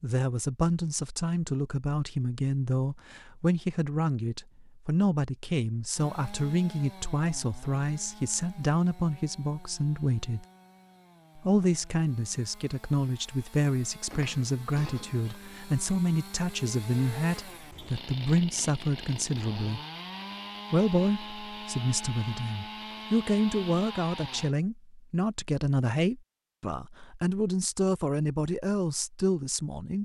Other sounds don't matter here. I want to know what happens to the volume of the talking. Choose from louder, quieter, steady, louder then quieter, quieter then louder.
steady.